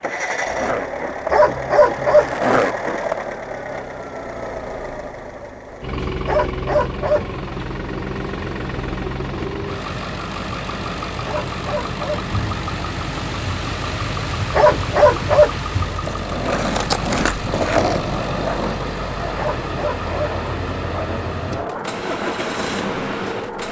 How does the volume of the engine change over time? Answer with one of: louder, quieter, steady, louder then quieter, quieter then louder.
steady.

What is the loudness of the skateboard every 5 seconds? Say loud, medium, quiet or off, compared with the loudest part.
loud, off, off, loud, medium.